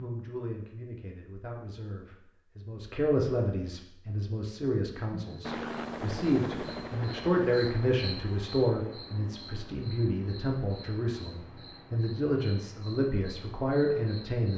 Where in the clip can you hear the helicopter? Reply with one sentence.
The helicopter can be heard from 5.4 to 8.0 s.